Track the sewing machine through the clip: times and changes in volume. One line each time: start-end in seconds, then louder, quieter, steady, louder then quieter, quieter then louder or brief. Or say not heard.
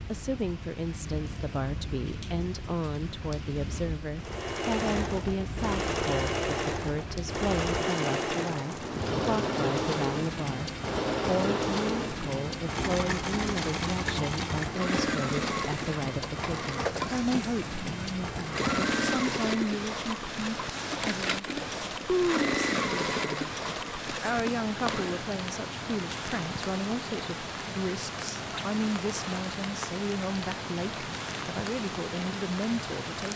4.2-25.2 steady.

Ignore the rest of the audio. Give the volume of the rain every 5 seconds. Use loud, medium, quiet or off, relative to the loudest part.
medium, loud, loud, loud, loud, loud, loud.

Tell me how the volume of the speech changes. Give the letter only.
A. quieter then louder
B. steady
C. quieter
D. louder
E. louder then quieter
B.